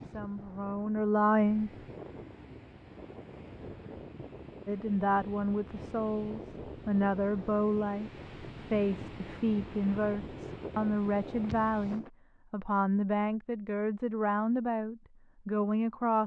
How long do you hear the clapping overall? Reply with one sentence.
You can't hear the clapping here.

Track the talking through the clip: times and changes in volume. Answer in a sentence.
You can hear the talking briefly from 0.0 to 1.7 s; and from 4.7 to 16.2 s, at a steady volume.